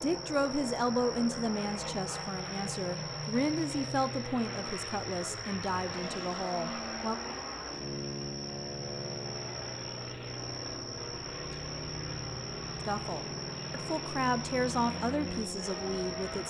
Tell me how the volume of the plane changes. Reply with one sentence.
The loudness of the plane stays about the same.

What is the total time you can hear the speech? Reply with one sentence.
The speech can be heard for 11 seconds in total.